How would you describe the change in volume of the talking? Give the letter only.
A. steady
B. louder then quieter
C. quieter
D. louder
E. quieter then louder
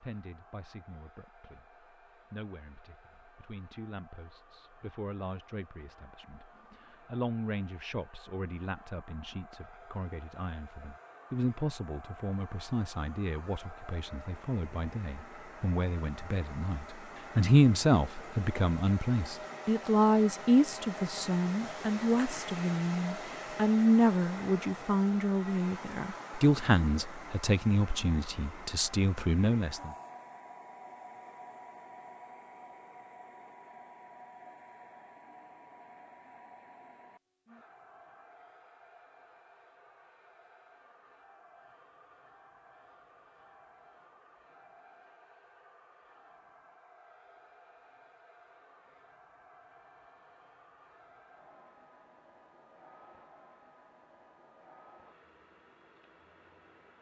D.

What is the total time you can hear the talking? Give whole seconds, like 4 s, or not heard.
30 s.